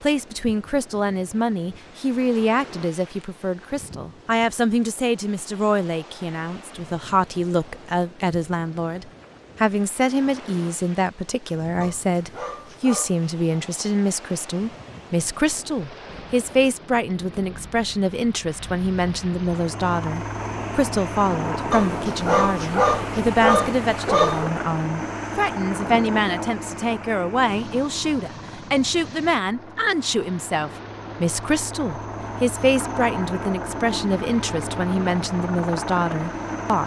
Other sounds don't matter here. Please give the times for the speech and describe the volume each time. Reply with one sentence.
The speech can be heard from 0.0 to 36.8 s, at a steady volume.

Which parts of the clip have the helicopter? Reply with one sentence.
The helicopter can be heard from 19.4 to 36.8 s.